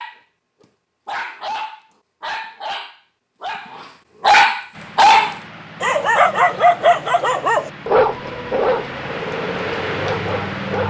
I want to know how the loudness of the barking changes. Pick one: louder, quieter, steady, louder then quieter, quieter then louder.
louder then quieter.